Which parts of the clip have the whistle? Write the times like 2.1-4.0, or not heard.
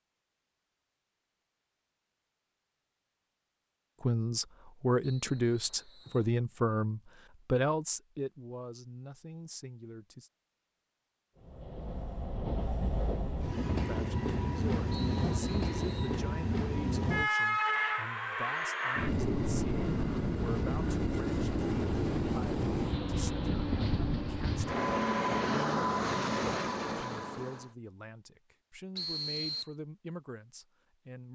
5.0-6.3, 14.9-16.1, 28.9-29.7.